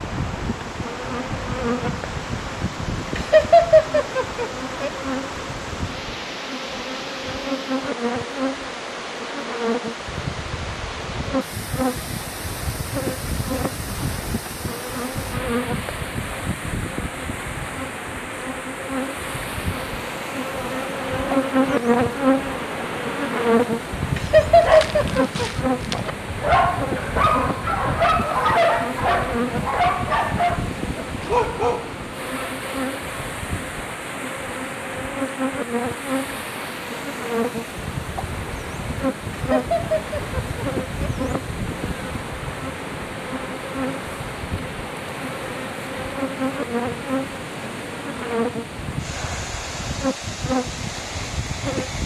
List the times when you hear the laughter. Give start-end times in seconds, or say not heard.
3.1-4.9, 24.1-25.5, 39.3-41.1.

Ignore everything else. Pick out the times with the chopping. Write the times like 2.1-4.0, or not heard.
not heard.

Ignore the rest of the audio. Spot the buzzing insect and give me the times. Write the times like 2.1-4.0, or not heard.
0.0-52.0.